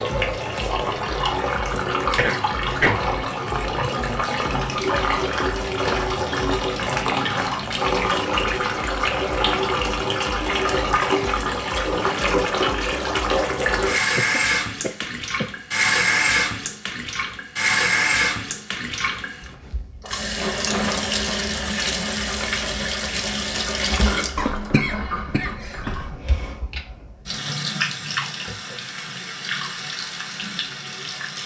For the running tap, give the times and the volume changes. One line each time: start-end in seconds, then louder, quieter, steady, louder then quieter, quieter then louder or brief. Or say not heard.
0.0-31.4 quieter.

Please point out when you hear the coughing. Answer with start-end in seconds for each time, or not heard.
2.1-3.0, 14.2-15.5, 24.4-26.1.